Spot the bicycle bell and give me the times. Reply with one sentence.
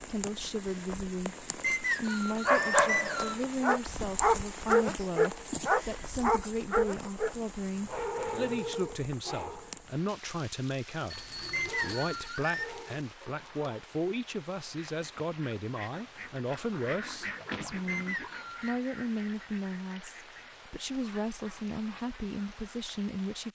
The bicycle bell can be heard from 11.1 to 12.4 s.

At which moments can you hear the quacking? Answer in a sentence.
The quacking can be heard from 14.7 to 22.8 s.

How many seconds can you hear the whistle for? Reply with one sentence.
You can hear the whistle for 4 seconds altogether.